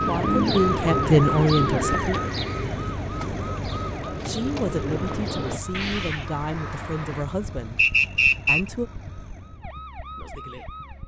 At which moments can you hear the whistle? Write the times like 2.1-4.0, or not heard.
7.8-8.6.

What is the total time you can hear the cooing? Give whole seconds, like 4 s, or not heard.
6 s.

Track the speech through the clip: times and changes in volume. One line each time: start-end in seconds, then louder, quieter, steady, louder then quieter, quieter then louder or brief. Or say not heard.
0.1-2.2 brief
4.2-8.9 quieter.